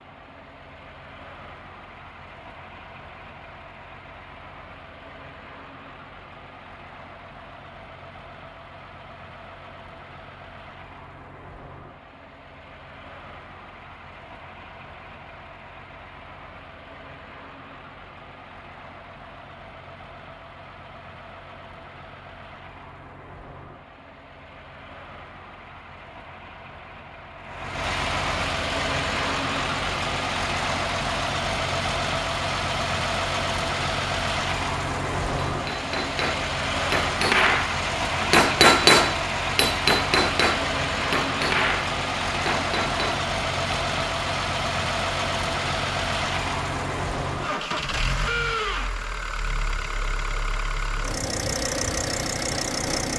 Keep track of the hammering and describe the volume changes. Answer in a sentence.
The loudness of the hammering goes up, then down.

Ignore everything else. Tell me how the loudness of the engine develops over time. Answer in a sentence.
The loudness of the engine goes up.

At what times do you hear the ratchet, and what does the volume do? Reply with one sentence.
You can't hear the ratchet here.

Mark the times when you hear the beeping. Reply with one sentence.
You can't hear the beeping here.